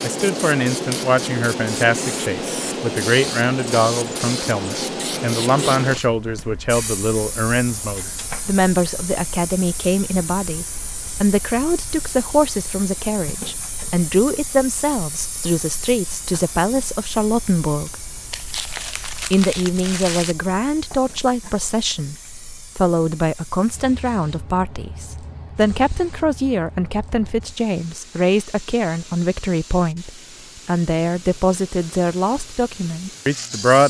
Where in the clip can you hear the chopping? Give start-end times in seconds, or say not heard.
not heard.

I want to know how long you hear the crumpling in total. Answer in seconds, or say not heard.
2 s.